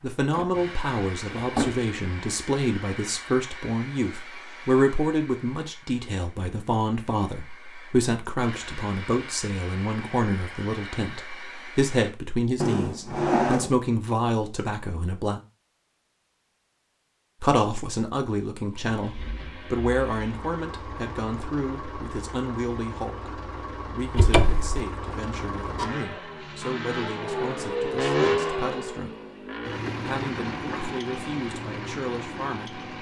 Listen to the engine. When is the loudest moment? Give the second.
28 s.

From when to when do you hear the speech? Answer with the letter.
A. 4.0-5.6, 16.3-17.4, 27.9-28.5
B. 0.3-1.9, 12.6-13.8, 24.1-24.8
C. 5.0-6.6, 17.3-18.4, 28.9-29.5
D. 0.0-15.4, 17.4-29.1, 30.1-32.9
D.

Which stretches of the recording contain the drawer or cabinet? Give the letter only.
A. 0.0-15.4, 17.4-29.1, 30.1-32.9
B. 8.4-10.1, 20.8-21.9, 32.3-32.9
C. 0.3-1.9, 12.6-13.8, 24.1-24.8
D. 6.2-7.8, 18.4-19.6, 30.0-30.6
C.